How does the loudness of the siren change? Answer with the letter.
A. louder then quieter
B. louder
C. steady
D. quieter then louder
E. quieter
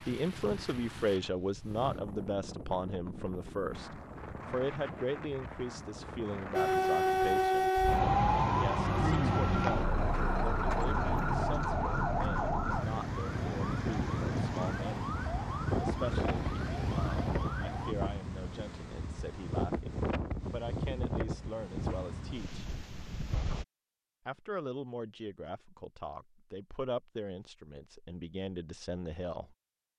E.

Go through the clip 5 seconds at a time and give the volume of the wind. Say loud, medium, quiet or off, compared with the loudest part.
medium, medium, loud, loud, loud, off.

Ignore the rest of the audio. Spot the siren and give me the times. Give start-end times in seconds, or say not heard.
6.5-17.9.